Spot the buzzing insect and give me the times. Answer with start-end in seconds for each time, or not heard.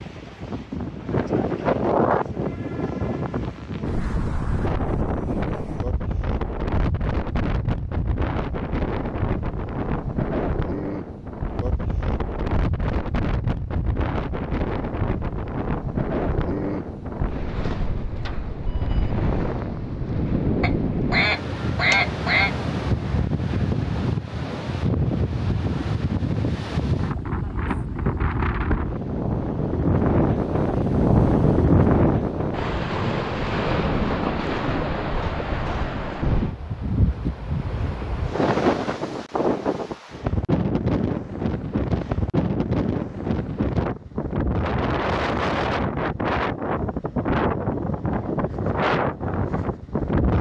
not heard.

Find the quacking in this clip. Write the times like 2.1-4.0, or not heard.
20.6-22.5.